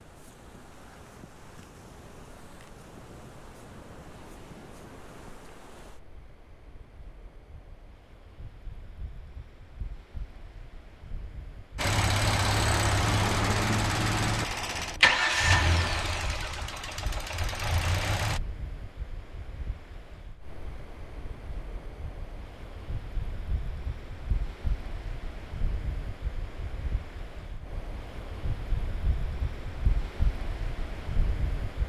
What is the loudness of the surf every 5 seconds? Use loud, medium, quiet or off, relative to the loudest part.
medium, quiet, quiet, medium, medium, loud, loud.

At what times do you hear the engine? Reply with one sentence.
You can hear the engine from 11.8 to 18.4 s.